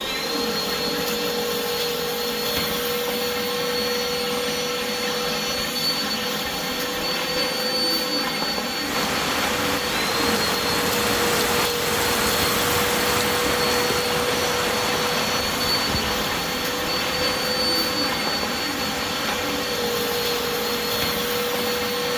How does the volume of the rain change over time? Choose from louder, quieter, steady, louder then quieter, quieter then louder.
quieter.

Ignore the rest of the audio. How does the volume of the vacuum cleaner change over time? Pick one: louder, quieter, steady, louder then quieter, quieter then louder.
steady.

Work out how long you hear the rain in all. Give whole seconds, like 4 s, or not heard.
13 s.